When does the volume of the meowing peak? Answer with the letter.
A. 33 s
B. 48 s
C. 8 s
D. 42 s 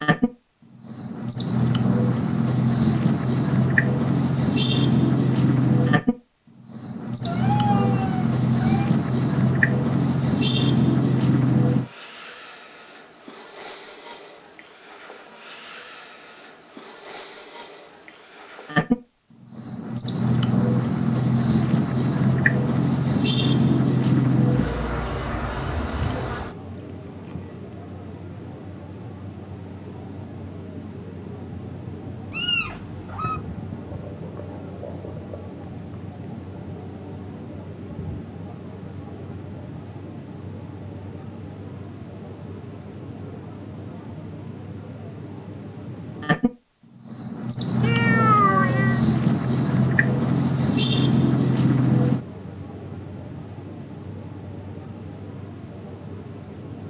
B.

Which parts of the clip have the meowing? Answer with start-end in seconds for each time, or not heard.
7.2-8.9, 32.3-33.4, 47.8-49.0.